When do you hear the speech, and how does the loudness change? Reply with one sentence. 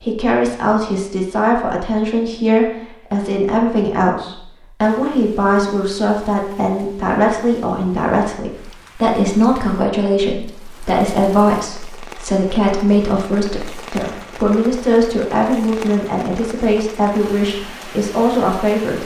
The speech can be heard from 0.0 to 19.0 s, at a steady volume.